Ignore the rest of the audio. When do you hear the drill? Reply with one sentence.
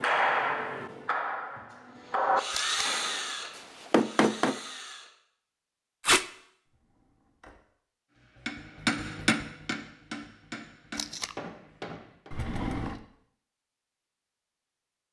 You can hear the drill from 1.7 to 5.1 s.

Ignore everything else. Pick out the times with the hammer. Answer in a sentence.
You can hear the hammer from 0.0 to 4.6 s and from 8.2 to 12.3 s.